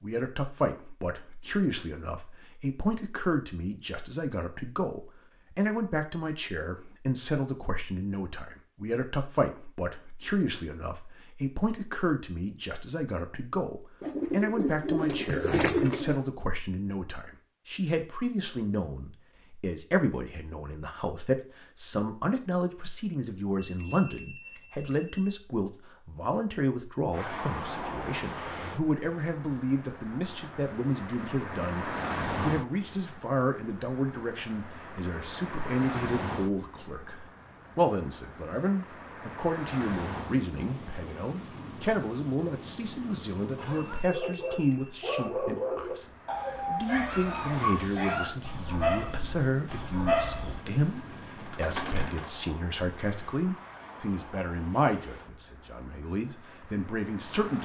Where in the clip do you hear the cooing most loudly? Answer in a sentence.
The loudest moment of the cooing is at 16 seconds.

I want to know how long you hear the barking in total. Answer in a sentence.
The barking can be heard for 7 seconds in total.